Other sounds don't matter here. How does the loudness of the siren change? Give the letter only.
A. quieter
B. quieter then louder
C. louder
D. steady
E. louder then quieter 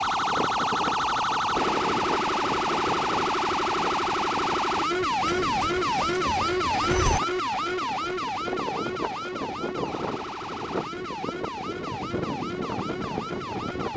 A.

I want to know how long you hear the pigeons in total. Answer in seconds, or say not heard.
2 s.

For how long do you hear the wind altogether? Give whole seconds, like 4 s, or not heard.
14 s.